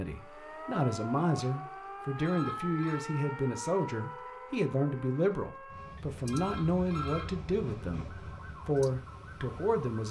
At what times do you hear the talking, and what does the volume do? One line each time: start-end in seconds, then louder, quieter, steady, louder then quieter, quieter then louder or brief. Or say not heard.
0.0-10.0 steady.